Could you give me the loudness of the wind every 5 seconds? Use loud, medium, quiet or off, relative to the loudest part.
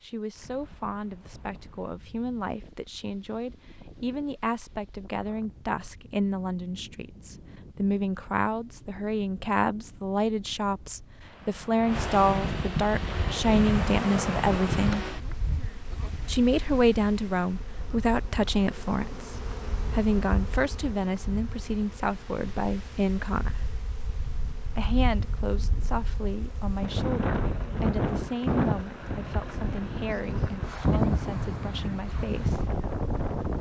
quiet, quiet, loud, quiet, quiet, loud, loud.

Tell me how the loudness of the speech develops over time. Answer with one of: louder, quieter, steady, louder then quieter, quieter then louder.
louder then quieter.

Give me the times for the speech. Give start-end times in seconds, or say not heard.
0.0-15.1, 16.2-23.6, 24.8-32.7.